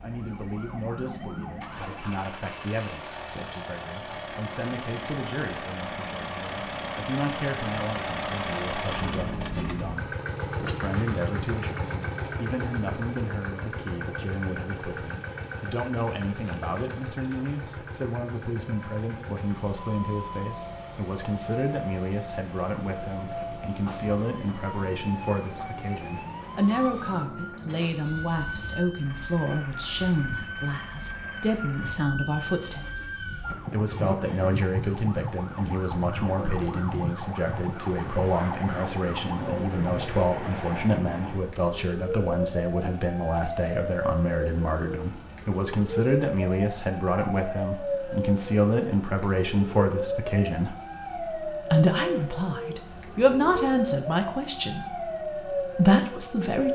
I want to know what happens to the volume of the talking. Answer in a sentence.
The volume of the talking goes up.